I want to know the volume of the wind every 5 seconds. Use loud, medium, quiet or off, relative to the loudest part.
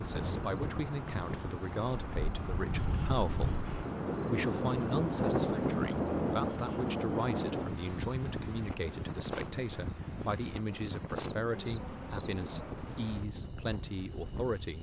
loud, loud, medium.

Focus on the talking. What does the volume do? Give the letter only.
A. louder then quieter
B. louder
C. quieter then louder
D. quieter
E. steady
E.